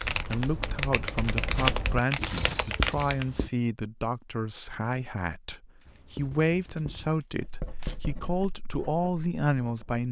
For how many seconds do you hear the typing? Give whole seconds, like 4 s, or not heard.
3 s.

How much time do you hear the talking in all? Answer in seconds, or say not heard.
10 s.